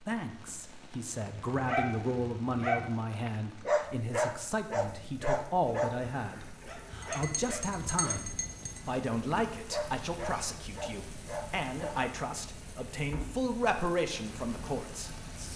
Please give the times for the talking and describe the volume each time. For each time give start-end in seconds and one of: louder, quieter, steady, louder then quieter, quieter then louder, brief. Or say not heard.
0.0-15.5 steady.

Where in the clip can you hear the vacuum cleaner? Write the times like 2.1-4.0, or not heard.
not heard.